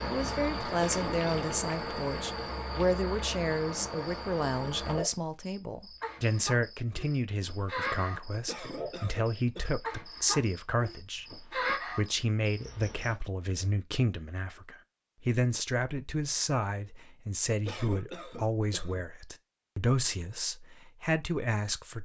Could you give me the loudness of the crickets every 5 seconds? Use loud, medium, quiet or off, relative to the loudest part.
loud, loud, loud, off, off.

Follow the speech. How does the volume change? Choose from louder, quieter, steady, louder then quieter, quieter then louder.
steady.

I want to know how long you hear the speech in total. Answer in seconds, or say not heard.
22 s.